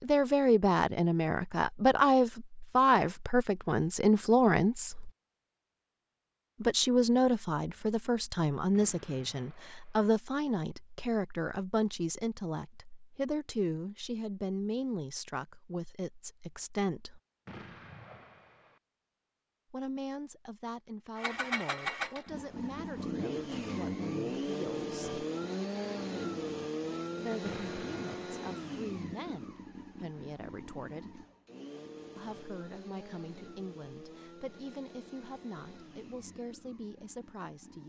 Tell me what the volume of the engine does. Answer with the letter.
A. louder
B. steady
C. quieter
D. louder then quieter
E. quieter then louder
C.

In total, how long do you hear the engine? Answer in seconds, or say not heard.
17 s.